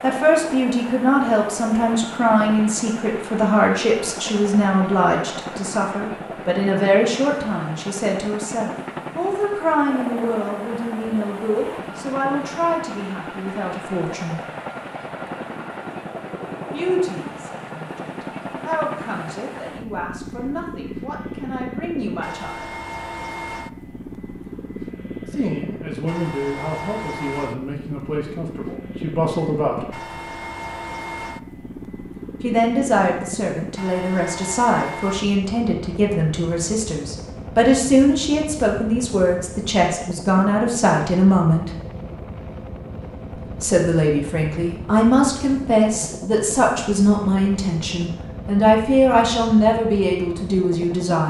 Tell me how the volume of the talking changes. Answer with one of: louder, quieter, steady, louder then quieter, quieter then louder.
quieter then louder.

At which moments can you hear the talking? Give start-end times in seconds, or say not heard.
0.0-14.4, 16.7-22.7, 25.3-29.9, 32.4-41.7, 43.5-51.2.